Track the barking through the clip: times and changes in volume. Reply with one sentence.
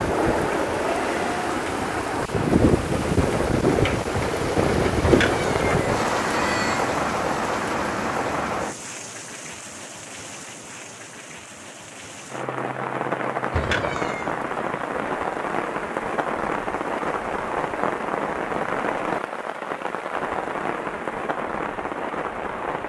You can't hear the barking here.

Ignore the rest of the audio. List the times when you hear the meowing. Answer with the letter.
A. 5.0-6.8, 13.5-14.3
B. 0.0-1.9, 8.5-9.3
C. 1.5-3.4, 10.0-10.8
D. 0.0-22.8
A.